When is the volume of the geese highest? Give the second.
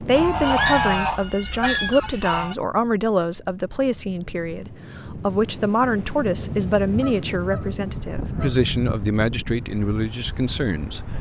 1 s.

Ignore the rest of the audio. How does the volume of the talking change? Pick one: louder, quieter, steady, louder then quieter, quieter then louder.
steady.